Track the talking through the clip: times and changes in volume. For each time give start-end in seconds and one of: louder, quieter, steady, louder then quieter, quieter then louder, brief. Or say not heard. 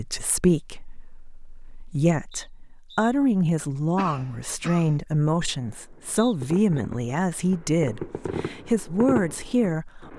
0.0-10.1 steady.